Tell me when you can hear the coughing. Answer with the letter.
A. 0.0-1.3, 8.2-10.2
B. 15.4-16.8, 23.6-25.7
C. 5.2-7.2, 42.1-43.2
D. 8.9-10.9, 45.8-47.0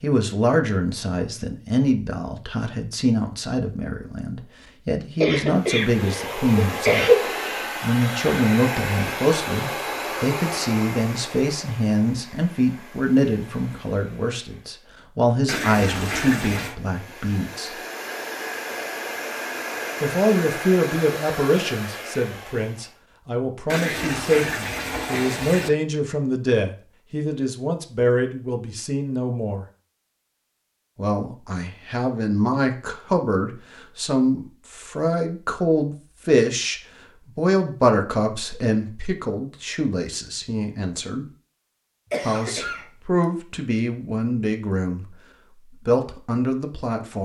C.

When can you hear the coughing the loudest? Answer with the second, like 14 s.
7 s.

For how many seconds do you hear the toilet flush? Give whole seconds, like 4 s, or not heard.
3 s.